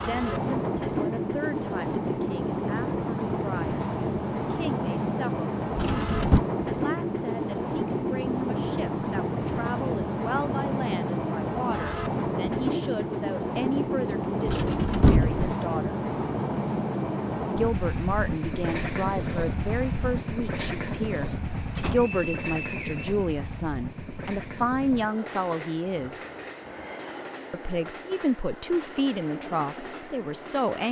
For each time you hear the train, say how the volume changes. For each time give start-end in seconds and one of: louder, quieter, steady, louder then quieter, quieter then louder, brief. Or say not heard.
0.0-30.8 quieter.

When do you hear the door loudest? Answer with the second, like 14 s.
15 s.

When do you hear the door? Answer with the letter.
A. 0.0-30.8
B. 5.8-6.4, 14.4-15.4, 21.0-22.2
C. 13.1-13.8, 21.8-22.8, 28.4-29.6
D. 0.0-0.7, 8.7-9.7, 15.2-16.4
B.